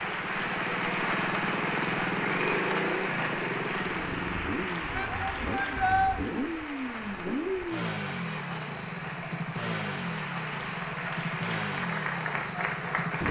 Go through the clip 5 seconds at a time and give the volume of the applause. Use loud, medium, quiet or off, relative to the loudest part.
loud, medium, loud.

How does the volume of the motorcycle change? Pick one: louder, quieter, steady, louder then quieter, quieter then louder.
steady.